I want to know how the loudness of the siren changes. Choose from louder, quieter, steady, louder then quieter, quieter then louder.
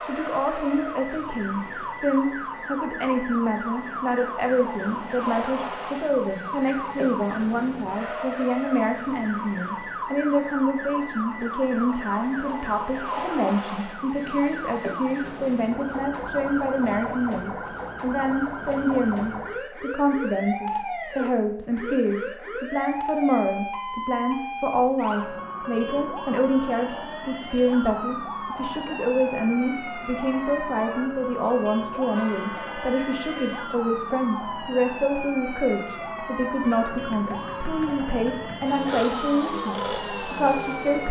steady.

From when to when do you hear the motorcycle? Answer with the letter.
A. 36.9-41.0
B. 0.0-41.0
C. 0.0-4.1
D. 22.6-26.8
A.